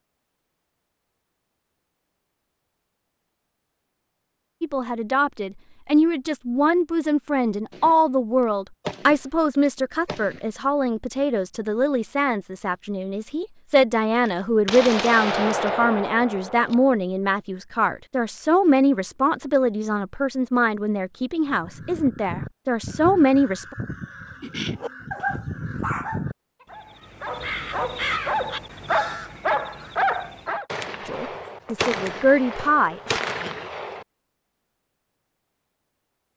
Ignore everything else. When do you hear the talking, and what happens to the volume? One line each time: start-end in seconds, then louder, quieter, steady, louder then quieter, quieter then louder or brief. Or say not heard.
4.6-23.8 steady
31.1-33.1 brief.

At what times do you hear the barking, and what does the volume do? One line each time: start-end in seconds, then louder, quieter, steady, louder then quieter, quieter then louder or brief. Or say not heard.
24.8-30.6 quieter then louder.